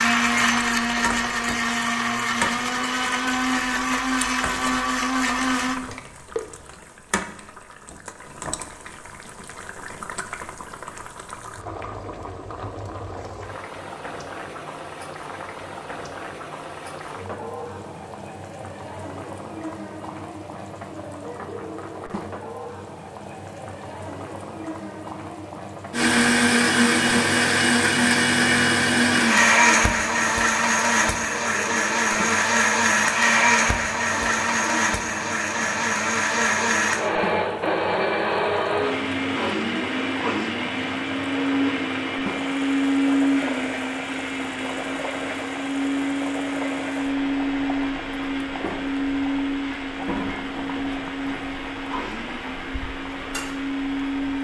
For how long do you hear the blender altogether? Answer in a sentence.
The blender can be heard for 35 seconds in total.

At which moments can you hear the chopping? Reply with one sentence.
The chopping can't be heard in this clip.